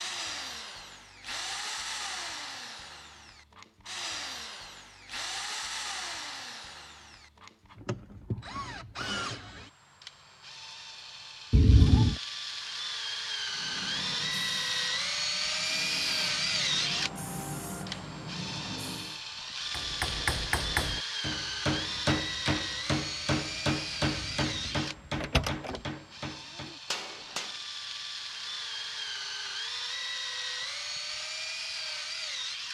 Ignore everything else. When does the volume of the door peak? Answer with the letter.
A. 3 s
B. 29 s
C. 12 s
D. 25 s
C.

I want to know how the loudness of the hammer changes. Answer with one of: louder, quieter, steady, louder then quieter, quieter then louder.
quieter.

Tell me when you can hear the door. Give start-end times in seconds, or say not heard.
11.5-12.2, 24.0-25.8.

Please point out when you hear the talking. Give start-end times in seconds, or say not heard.
not heard.